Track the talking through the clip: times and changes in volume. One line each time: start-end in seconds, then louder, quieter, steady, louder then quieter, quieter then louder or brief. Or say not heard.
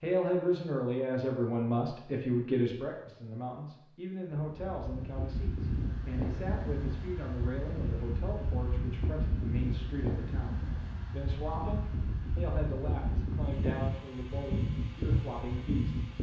0.0-16.0 quieter.